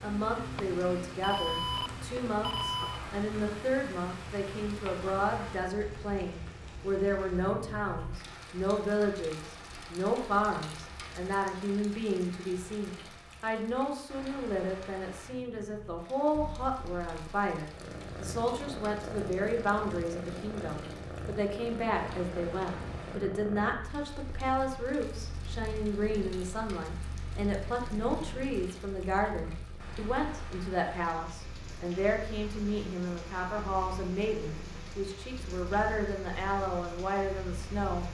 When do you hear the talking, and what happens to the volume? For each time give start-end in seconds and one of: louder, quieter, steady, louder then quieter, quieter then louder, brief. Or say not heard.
0.0-38.0 steady.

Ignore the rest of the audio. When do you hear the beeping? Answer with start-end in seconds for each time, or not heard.
0.6-3.0.